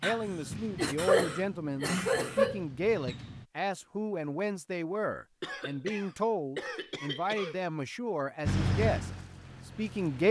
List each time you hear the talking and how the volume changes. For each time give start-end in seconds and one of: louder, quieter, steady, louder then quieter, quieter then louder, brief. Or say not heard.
0.0-10.2 steady.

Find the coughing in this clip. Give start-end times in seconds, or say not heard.
0.0-2.6, 5.4-7.7.